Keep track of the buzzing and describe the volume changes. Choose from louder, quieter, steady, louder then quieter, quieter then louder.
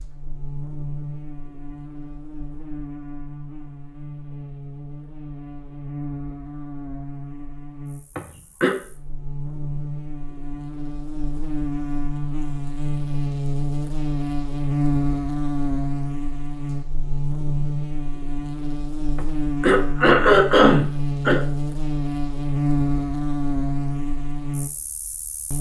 louder.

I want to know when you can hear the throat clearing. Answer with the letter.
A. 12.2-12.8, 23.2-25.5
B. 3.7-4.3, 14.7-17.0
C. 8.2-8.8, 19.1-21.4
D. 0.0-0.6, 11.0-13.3
C.